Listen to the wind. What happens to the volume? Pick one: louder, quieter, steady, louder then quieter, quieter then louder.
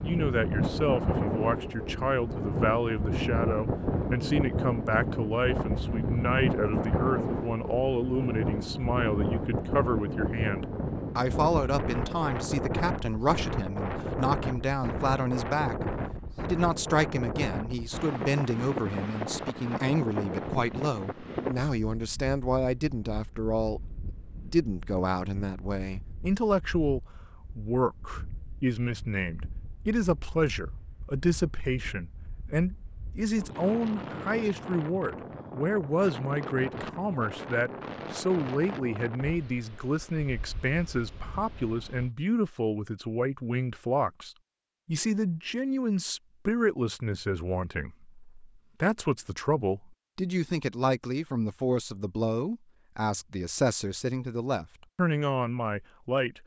quieter then louder.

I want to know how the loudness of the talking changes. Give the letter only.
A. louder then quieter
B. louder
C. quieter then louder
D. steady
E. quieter
D.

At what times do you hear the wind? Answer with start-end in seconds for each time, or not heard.
0.0-42.1.